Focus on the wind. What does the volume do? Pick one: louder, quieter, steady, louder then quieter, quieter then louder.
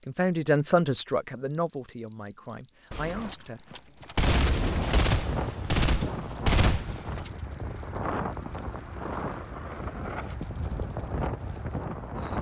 steady.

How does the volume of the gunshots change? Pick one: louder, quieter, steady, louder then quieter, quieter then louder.
louder.